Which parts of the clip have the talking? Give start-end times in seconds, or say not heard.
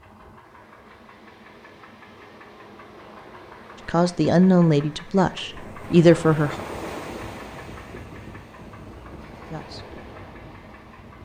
3.9-6.6, 9.5-9.9.